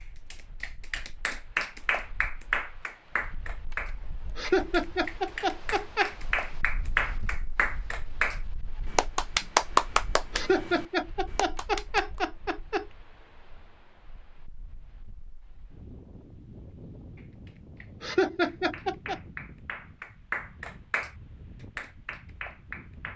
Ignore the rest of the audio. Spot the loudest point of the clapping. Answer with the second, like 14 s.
10 s.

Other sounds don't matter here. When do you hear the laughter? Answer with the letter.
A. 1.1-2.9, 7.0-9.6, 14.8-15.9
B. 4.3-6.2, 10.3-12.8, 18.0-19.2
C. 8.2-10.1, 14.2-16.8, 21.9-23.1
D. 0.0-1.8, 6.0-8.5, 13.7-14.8
B.